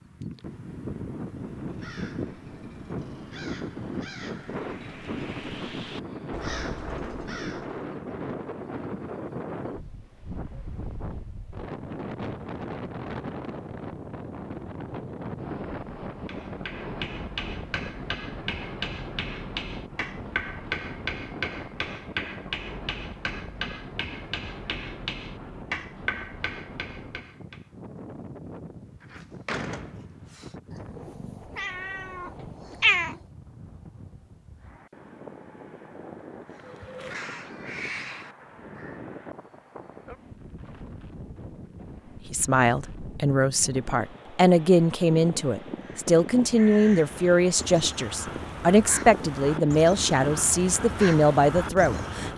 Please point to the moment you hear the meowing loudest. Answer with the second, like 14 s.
33 s.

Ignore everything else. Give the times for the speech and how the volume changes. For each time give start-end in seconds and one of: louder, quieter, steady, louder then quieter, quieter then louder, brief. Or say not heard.
42.3-52.3 steady.